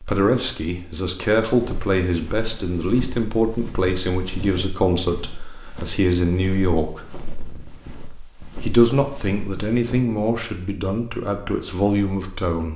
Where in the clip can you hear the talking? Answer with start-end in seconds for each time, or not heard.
0.0-7.0, 8.6-12.7.